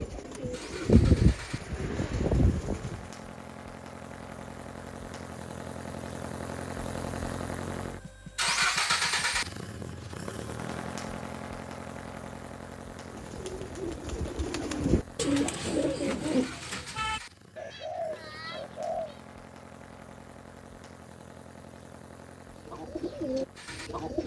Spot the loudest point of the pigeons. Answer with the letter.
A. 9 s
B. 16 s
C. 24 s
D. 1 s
D.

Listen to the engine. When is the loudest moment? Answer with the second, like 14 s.
9 s.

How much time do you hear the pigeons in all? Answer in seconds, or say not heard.
11 s.